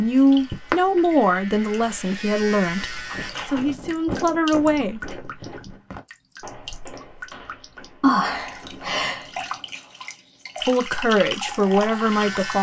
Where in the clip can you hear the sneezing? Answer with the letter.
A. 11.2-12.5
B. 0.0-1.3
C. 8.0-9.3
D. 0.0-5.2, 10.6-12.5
C.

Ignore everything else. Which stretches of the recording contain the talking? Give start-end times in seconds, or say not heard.
0.0-5.2, 10.6-12.5.